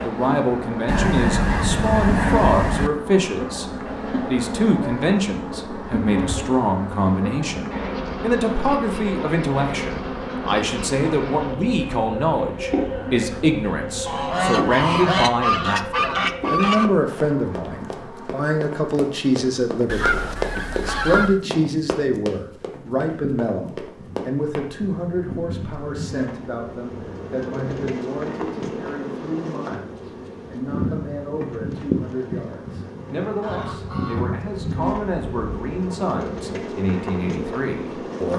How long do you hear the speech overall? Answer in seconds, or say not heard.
38 s.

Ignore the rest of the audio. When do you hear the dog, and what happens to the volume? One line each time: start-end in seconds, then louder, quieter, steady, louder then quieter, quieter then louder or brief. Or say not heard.
not heard.